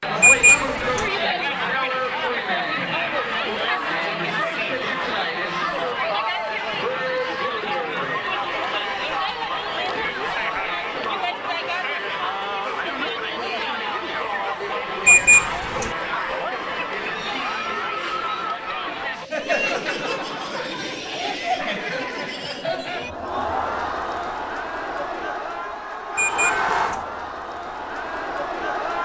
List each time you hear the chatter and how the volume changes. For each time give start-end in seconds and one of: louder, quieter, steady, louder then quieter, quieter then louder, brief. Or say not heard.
0.0-28.9 steady.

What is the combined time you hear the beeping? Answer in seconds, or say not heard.
3 s.